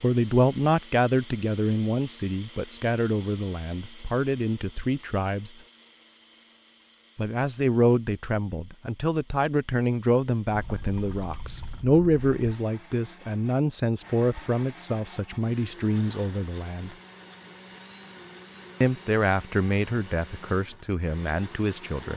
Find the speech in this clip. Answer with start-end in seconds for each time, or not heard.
0.0-5.5, 7.2-16.9, 18.8-22.1.